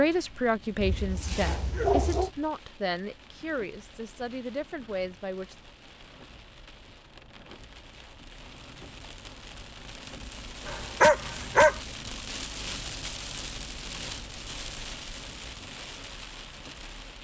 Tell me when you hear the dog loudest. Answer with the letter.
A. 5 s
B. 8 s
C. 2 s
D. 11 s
D.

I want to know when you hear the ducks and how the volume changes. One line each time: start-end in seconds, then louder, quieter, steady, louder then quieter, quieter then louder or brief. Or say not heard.
not heard.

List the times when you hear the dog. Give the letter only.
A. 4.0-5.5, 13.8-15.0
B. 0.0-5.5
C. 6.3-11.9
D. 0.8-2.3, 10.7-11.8
D.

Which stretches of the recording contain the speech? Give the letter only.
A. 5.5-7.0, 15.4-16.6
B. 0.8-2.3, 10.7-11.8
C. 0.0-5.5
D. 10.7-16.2
C.